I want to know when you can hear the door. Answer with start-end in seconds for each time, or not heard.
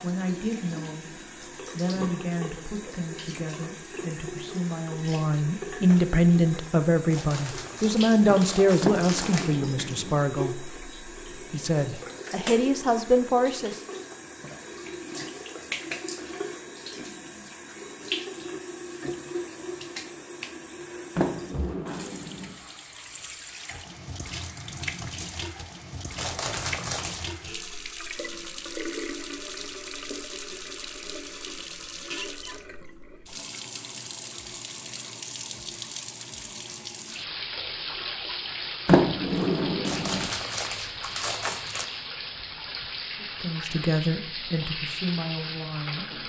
8.8-10.2, 21.1-22.5, 38.9-40.2.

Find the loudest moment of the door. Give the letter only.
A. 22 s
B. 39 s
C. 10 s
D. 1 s
B.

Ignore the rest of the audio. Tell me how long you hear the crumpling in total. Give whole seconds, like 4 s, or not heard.
6 s.